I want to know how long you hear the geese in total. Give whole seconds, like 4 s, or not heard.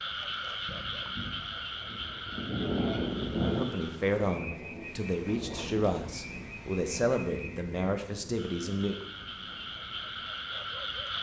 3 s.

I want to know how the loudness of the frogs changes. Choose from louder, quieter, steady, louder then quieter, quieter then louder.
quieter then louder.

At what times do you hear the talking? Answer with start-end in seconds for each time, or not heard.
3.5-8.9.